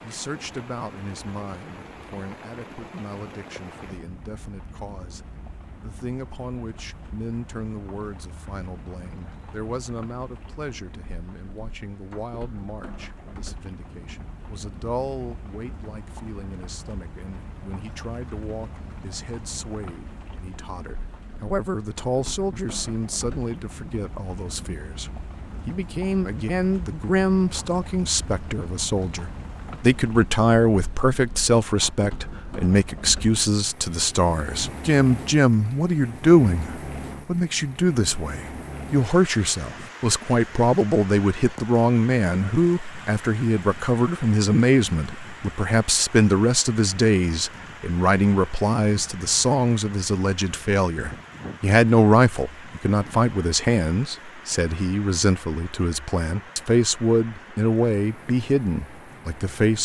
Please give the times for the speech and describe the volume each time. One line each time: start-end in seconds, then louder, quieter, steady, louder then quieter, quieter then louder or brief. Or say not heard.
0.0-59.8 louder.